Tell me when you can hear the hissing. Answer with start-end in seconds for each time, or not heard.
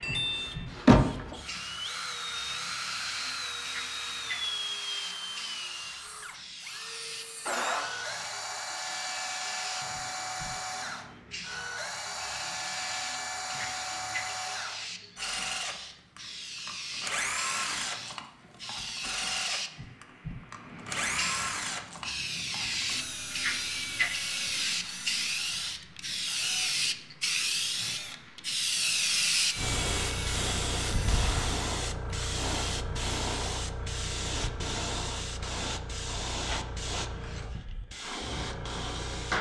0.0-39.3.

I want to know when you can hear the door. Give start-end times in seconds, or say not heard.
0.0-1.4.